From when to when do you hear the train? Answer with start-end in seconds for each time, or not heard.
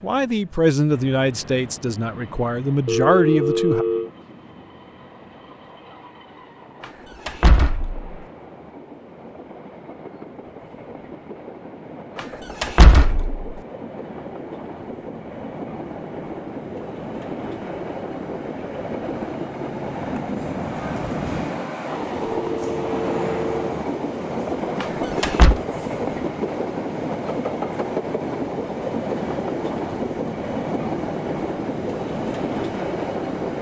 0.0-33.5.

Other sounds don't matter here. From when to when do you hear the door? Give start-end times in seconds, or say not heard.
6.8-8.0, 12.2-13.4, 24.8-25.6.